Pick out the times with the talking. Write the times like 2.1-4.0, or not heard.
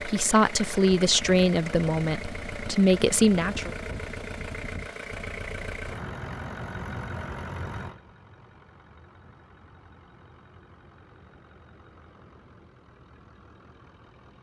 0.1-3.8.